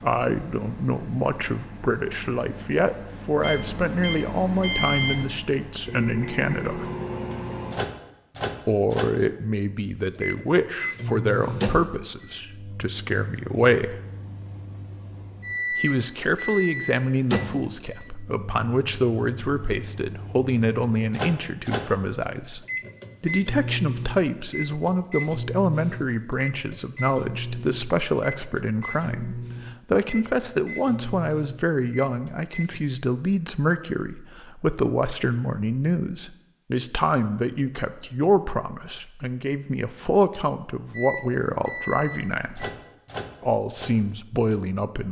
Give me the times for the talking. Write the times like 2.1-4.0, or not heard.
0.0-6.9, 8.7-14.0, 15.8-42.7, 43.4-45.0.